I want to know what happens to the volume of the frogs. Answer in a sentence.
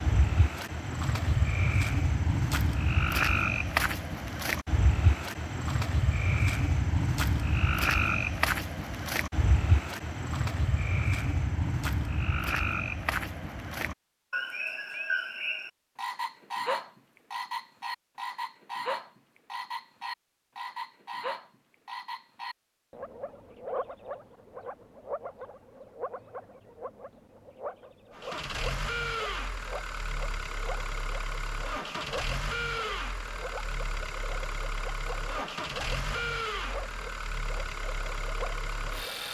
The volume of the frogs goes down.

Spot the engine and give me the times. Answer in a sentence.
You can hear the engine from 28.1 to 39.2 s.